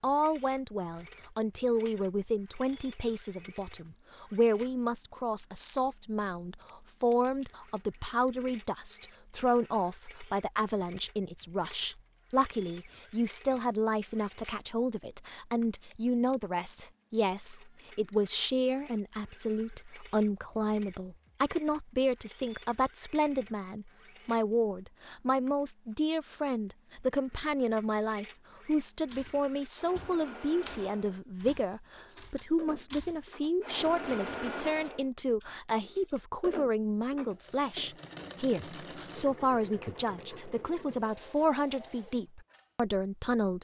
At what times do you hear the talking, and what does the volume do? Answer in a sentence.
The talking can be heard from 0.0 to 43.6 s, at a steady volume.